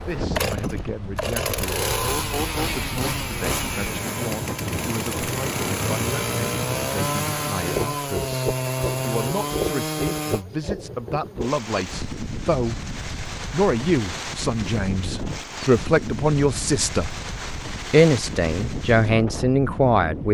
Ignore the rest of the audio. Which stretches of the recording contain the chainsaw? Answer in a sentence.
The chainsaw can be heard from 0.0 to 10.4 s.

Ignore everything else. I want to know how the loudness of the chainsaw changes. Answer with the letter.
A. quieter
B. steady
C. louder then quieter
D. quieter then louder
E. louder
B.